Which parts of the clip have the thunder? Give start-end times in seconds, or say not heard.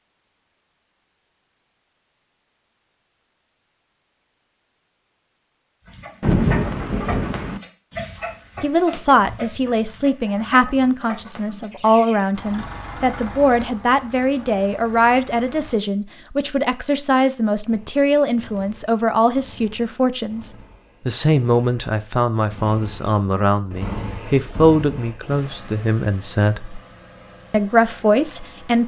6.2-7.6.